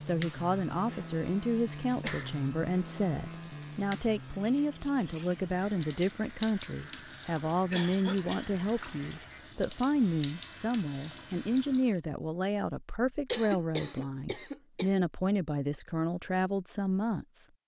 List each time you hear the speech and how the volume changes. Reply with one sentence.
You can hear the speech from 0.0 to 17.4 s, at a steady volume.